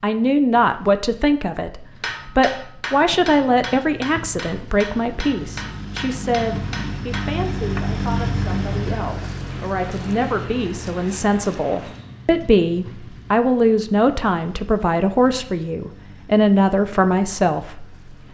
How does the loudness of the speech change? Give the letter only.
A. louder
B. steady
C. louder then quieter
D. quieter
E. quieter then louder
E.